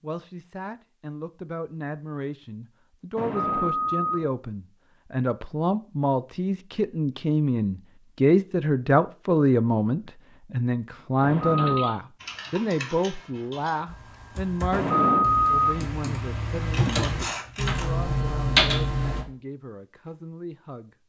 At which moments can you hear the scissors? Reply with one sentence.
You can hear the scissors from 16.7 to 17.9 s.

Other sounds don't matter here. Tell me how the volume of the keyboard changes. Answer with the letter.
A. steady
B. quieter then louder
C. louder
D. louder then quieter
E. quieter
B.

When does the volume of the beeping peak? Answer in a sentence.
The volume of the beeping peaks at 15 seconds.